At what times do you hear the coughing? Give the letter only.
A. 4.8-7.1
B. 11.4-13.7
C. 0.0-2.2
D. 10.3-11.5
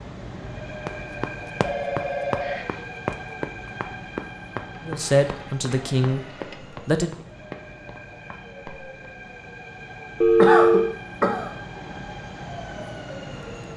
D.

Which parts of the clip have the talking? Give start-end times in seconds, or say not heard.
4.8-7.1.